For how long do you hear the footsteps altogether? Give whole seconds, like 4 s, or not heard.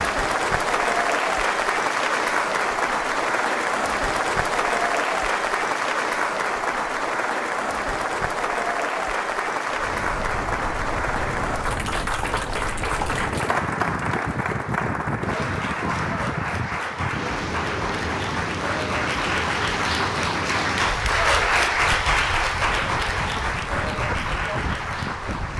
not heard.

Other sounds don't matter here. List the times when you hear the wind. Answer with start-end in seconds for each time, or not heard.
9.7-25.5.